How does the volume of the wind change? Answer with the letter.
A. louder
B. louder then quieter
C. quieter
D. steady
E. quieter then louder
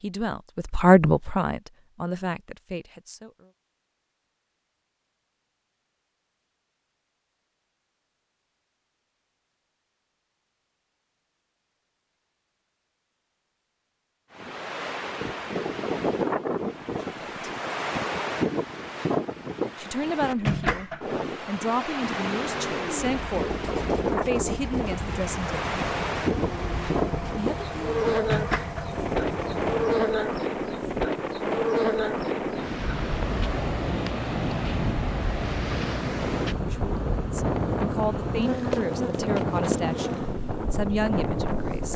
D.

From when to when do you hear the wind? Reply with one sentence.
The wind can be heard from 14.3 to 41.9 s.